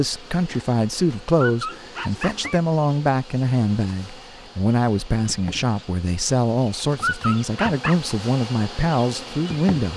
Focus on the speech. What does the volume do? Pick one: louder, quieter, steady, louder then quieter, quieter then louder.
steady.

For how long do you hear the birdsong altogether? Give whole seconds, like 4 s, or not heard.
not heard.